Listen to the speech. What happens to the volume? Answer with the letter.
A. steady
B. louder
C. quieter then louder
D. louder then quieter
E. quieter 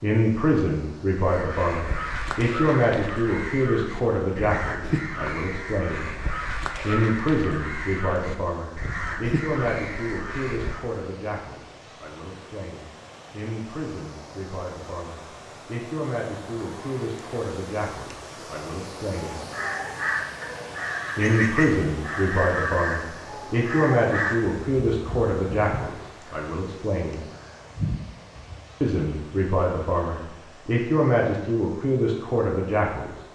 C.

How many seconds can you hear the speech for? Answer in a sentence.
You can hear the speech for 29 seconds altogether.